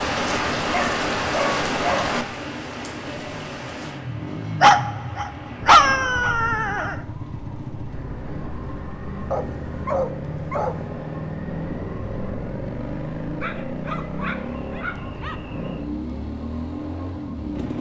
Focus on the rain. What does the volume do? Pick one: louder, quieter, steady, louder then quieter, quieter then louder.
quieter.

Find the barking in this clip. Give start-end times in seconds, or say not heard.
0.7-2.1, 4.6-7.0, 9.3-10.8, 13.4-15.3.